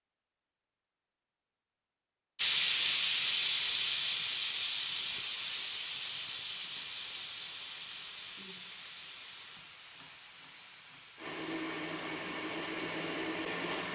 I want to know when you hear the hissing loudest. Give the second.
3 s.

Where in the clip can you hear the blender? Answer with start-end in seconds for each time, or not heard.
11.2-13.9.